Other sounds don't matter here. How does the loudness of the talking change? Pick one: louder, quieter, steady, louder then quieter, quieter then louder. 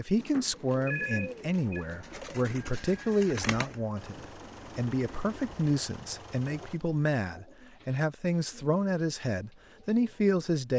steady.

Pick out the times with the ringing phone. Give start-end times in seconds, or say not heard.
0.1-1.9.